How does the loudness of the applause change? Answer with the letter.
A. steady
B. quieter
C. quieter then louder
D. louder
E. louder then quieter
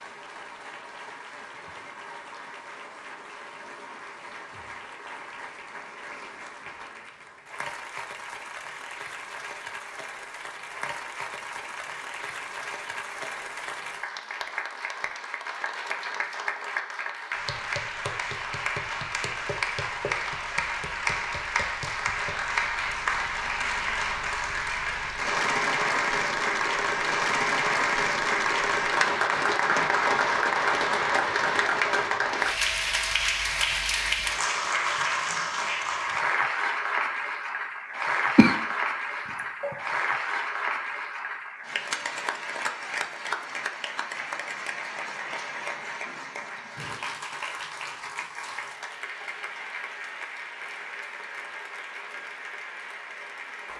E.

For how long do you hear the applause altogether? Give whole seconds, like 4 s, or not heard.
54 s.